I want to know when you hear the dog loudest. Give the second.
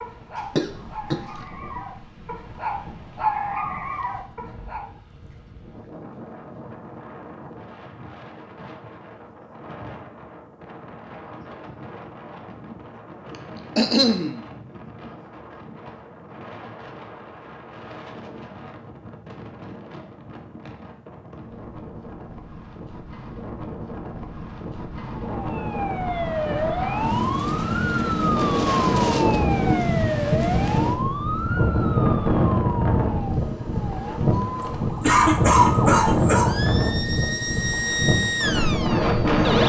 3 s.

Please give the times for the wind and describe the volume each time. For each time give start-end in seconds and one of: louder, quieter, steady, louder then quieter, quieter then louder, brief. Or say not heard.
0.0-39.6 louder.